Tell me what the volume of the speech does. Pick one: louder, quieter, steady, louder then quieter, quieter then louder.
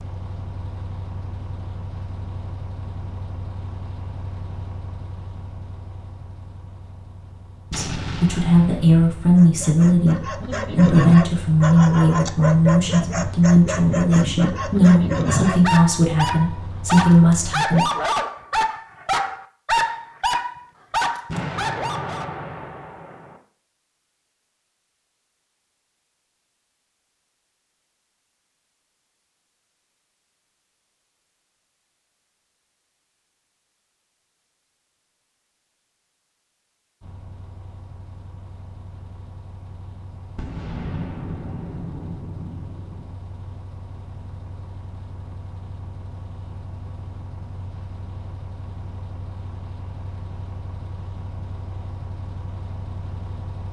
steady.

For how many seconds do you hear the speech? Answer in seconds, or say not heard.
10 s.